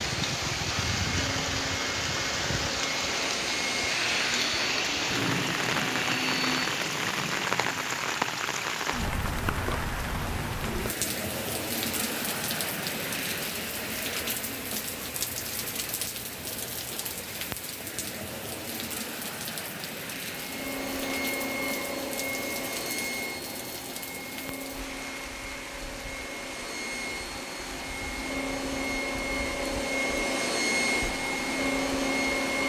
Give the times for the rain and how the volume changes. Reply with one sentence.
You can hear the rain from 0.0 to 32.6 s, getting quieter.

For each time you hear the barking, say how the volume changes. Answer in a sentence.
The barking can't be heard in this clip.